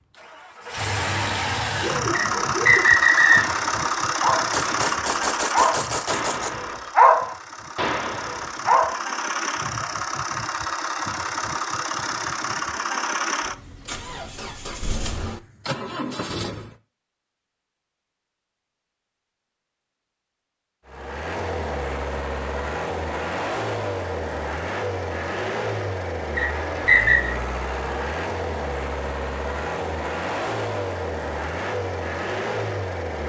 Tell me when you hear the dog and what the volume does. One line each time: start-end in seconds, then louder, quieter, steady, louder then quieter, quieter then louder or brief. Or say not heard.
1.8-9.1 louder then quieter.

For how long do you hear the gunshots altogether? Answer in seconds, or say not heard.
2 s.